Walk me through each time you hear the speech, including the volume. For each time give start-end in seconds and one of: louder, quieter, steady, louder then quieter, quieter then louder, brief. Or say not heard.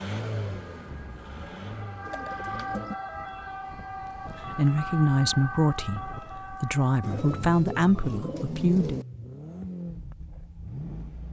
4.5-9.0 quieter then louder.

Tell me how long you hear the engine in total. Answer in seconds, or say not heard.
7 s.